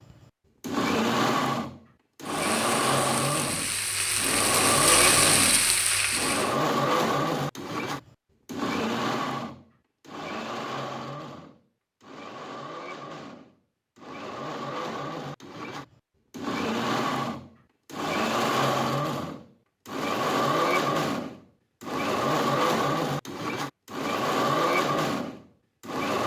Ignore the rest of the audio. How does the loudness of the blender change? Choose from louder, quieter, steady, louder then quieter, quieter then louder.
quieter then louder.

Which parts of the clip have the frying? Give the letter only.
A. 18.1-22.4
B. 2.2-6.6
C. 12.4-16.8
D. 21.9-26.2
B.